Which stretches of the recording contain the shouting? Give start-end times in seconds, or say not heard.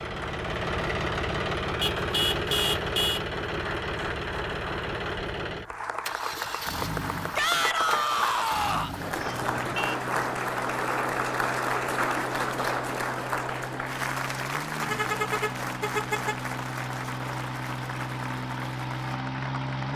7.3-8.9.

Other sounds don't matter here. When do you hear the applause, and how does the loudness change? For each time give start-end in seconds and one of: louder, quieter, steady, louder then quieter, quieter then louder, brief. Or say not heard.
0.2-19.9 louder then quieter.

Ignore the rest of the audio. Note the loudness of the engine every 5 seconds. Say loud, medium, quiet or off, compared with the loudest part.
loud, medium, medium, loud.